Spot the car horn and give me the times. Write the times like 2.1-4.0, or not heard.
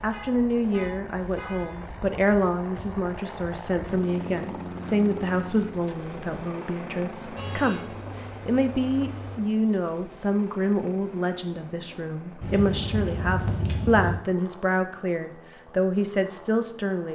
0.1-1.8, 7.3-9.3, 12.4-14.2.